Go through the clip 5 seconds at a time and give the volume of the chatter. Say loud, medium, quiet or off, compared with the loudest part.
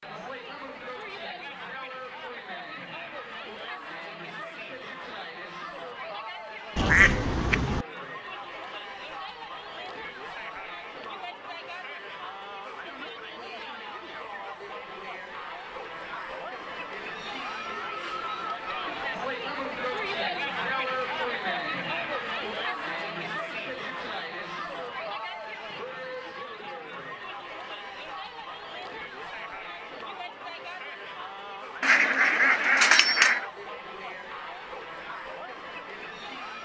medium, medium, medium, loud, loud, medium, medium, medium.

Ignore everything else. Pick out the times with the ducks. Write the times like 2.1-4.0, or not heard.
6.8-7.8, 31.8-33.5.